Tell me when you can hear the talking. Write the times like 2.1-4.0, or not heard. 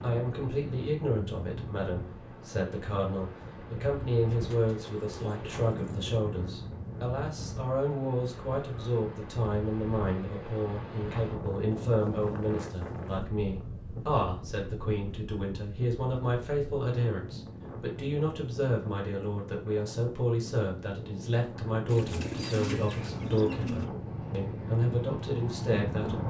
0.0-26.2.